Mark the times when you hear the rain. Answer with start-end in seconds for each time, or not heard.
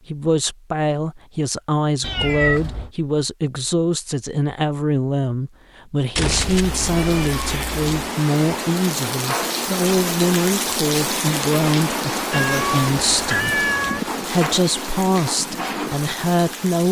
6.4-16.8.